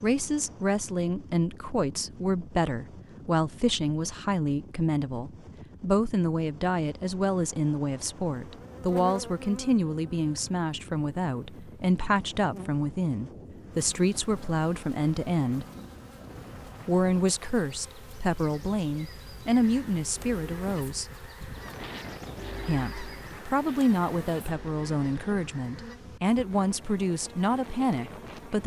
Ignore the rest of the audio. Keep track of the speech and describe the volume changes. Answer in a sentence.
The volume of the speech stays about the same.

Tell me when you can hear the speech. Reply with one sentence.
The speech can be heard from 0.0 to 15.7 s, from 16.9 to 21.1 s and from 22.6 to 28.6 s.